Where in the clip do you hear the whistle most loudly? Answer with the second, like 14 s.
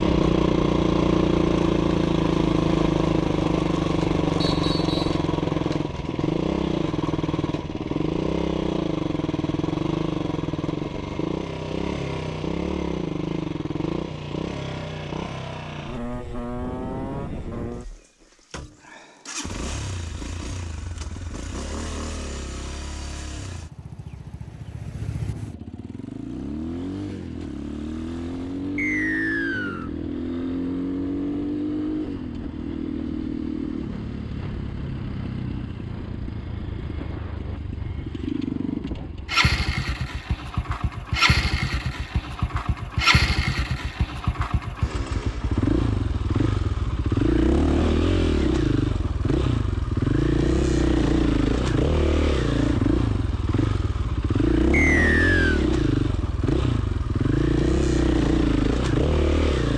55 s.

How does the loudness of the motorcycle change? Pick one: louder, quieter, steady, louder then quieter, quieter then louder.
quieter then louder.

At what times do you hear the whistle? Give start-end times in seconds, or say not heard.
4.4-5.2, 28.8-29.9, 54.7-55.6.